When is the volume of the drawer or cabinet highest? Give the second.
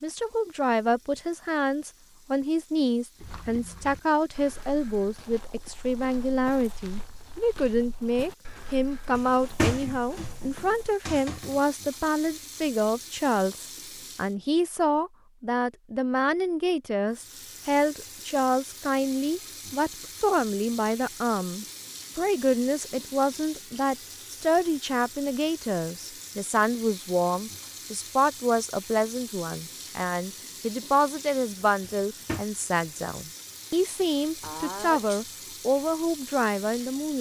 10 s.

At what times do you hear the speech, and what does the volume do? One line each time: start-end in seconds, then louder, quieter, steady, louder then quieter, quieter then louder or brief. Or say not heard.
0.0-37.1 steady.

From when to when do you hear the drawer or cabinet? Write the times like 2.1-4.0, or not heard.
9.2-11.6, 31.9-32.5.